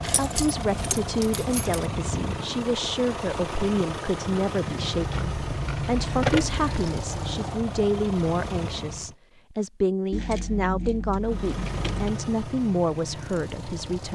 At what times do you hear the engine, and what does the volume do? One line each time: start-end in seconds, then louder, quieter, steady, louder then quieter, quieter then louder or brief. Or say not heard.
0.0-9.2 steady
11.2-14.0 brief.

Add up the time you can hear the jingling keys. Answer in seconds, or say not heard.
6 s.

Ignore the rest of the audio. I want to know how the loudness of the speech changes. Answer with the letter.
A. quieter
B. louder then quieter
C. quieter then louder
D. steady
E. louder
D.